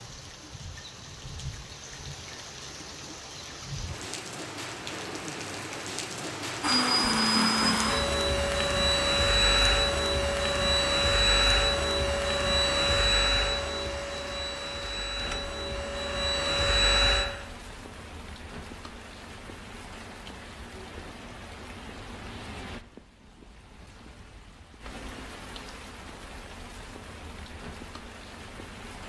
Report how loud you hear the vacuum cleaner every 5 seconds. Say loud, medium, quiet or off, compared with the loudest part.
off, loud, loud, loud, off, off.